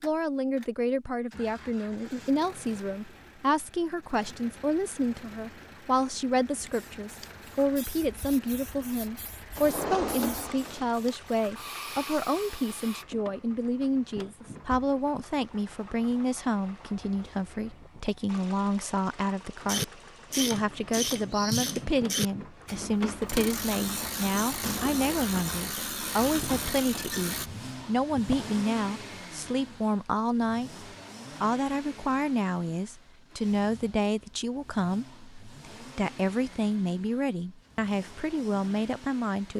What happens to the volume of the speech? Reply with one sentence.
The volume of the speech stays about the same.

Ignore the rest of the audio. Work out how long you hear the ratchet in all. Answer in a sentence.
You can hear the ratchet for 8 seconds altogether.